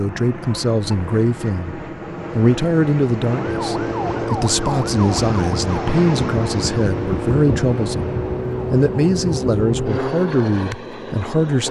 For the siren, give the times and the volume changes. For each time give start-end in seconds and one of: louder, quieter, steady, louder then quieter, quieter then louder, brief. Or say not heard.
3.3-10.2 steady.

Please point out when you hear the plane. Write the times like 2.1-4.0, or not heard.
0.0-11.6.